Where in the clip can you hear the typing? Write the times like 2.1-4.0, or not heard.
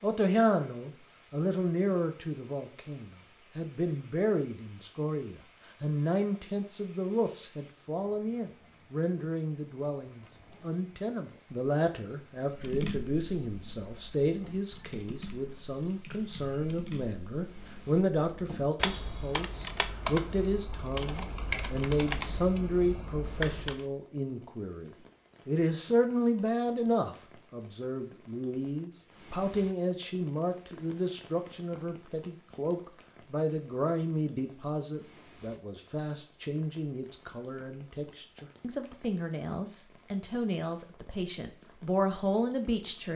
12.5-23.8.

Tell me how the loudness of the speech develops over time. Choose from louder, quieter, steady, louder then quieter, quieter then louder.
steady.